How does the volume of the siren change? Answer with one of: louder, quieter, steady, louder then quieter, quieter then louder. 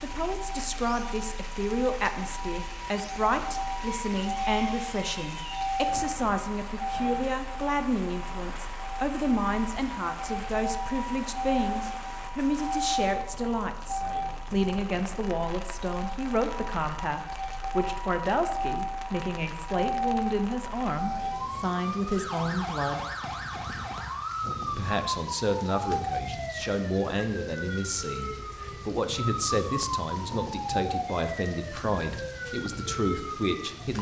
steady.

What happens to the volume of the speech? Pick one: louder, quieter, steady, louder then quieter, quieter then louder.
steady.